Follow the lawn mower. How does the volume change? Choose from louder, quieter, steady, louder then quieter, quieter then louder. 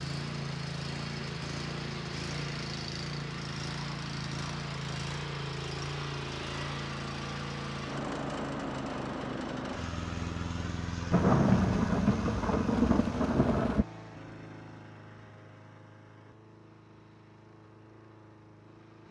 quieter.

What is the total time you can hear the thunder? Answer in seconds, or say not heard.
3 s.